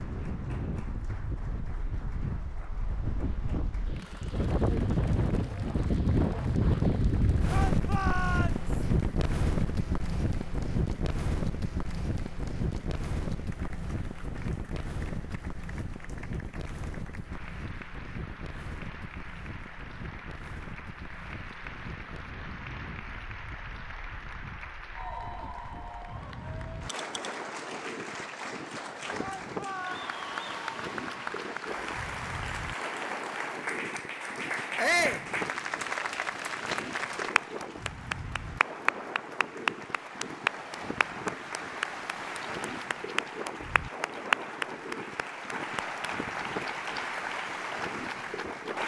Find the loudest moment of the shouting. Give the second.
35 s.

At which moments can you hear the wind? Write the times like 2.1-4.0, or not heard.
0.0-48.8.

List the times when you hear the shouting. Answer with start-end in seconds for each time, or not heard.
7.5-8.7, 29.2-30.0, 34.8-35.2.